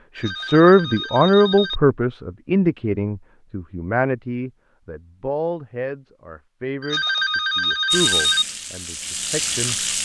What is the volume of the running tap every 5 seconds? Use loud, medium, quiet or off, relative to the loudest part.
off, loud.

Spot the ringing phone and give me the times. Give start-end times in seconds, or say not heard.
0.1-1.8, 6.8-8.4.